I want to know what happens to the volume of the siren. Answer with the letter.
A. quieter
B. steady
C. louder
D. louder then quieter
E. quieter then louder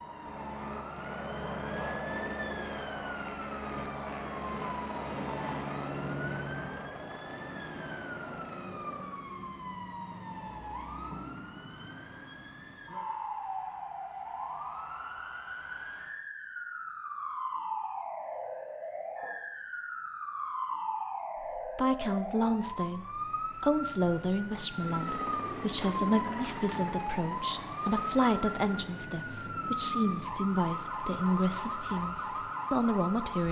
C.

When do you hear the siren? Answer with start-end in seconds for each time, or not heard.
0.0-33.4.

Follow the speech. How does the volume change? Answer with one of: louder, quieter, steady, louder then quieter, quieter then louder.
steady.